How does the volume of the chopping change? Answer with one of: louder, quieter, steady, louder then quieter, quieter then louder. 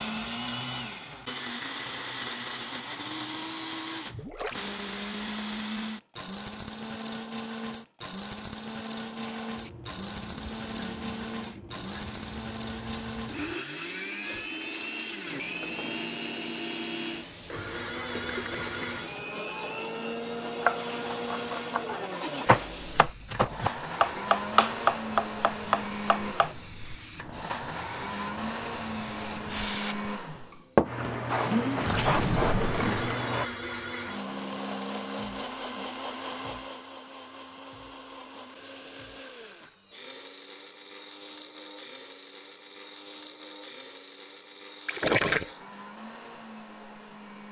louder.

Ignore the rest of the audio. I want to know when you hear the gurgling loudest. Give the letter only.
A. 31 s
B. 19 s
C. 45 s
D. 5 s
C.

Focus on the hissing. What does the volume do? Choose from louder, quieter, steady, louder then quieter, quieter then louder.
louder.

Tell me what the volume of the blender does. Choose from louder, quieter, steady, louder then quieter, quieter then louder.
quieter.